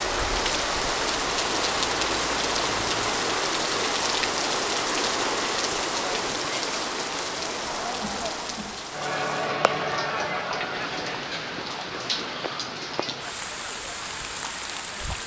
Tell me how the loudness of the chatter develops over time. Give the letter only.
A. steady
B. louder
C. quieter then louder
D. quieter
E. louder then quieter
E.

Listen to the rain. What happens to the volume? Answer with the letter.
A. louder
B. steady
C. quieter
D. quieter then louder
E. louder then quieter
C.